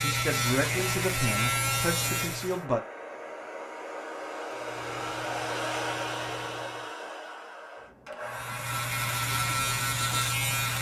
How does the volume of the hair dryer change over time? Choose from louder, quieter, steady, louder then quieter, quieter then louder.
louder then quieter.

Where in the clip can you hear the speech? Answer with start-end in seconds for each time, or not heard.
0.0-2.8.